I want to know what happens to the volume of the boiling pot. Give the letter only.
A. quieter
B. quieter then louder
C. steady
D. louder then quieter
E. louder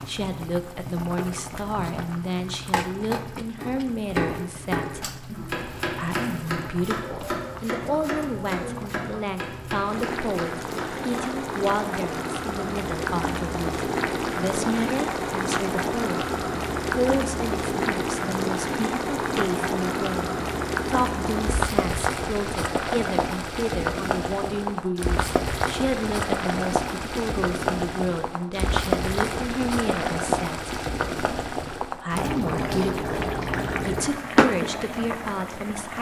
E.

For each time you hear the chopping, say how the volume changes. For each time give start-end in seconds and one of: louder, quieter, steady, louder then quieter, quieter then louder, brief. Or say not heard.
3.6-11.4 quieter.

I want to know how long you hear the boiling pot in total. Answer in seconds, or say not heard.
36 s.